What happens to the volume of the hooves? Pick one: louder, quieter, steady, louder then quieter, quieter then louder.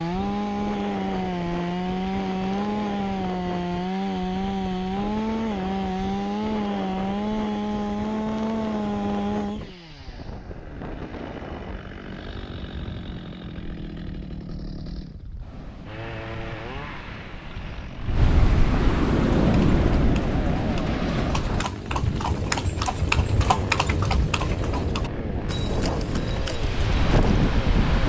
louder then quieter.